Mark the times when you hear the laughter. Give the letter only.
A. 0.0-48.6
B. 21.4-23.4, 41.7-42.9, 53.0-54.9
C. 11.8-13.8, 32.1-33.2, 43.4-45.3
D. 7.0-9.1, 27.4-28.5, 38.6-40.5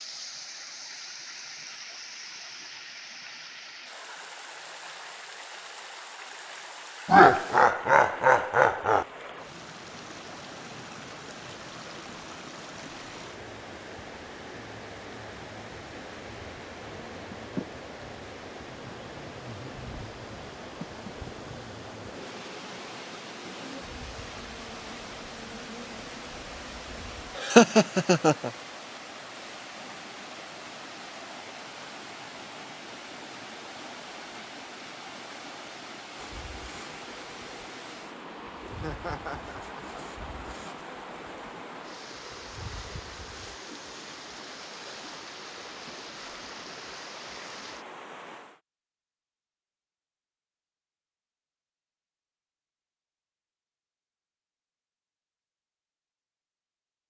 D.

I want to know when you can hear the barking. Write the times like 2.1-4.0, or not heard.
not heard.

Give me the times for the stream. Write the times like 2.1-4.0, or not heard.
0.0-48.6.